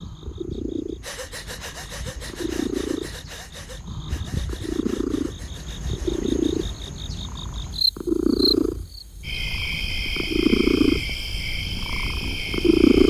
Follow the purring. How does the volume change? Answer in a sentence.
The volume of the purring goes up.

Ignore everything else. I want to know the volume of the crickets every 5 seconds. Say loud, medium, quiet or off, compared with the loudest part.
medium, loud, loud.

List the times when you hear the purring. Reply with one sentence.
You can hear the purring from 0.0 to 13.0 s.